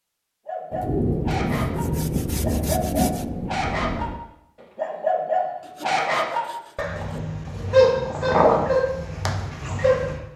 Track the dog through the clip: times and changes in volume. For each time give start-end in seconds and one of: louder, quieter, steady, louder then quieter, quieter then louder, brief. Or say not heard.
0.5-10.2 louder.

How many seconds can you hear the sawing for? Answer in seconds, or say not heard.
3 s.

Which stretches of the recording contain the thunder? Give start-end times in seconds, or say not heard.
0.7-4.2.